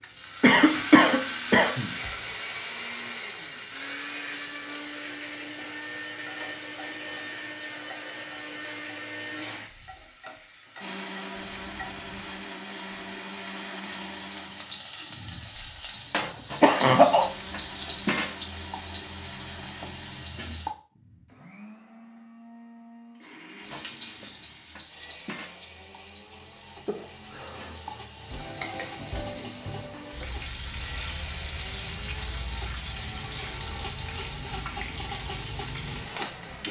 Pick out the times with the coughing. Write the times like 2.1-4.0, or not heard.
0.4-1.9, 16.6-17.2, 26.9-27.8.